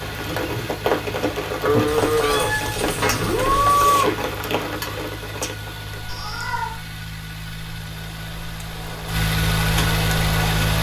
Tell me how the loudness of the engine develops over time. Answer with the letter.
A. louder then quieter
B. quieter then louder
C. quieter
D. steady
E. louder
E.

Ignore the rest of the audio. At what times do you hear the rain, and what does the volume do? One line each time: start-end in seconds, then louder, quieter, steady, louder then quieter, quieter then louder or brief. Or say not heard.
0.0-10.7 quieter then louder.